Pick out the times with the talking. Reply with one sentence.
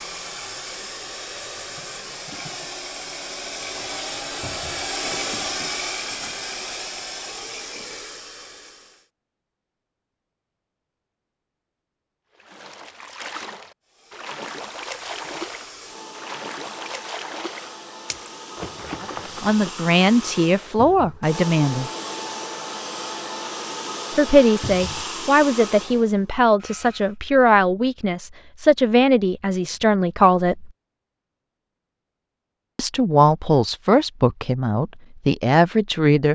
You can hear the talking from 19.0 to 21.9 s, from 24.1 to 30.7 s and from 32.8 to 36.3 s.